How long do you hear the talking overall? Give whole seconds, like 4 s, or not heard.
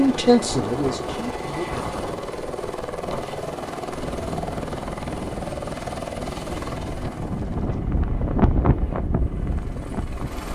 2 s.